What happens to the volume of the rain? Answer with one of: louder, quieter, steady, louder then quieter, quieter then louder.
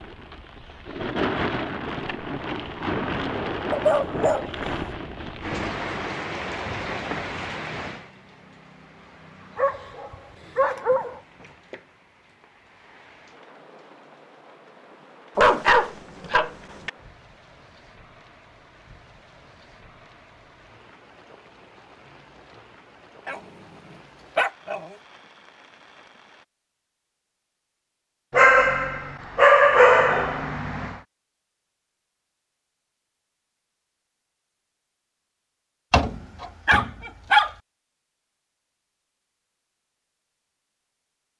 quieter.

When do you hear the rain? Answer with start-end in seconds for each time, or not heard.
0.0-26.4.